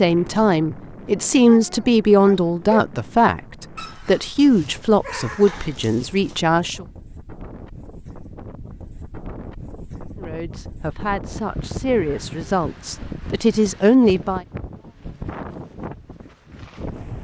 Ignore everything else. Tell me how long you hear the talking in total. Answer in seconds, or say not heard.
11 s.